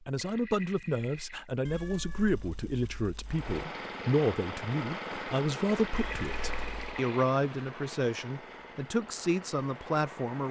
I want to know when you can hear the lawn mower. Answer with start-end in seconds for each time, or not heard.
3.2-10.4.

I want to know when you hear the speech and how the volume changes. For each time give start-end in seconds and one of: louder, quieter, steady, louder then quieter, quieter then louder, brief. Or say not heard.
0.1-10.4 steady.